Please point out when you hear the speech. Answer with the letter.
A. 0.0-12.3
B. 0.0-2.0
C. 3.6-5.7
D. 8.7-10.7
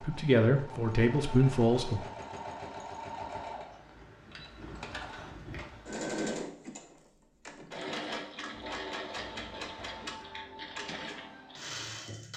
B.